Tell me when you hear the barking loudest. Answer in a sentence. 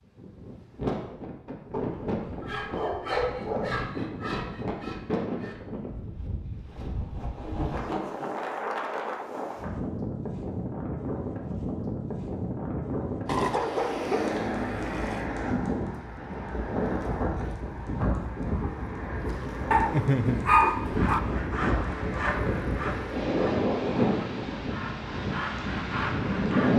The volume of the barking peaks at 21 seconds.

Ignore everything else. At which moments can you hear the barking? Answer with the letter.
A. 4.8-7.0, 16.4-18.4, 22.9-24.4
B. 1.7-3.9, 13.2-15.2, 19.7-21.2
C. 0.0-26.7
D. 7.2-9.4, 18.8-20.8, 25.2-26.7
B.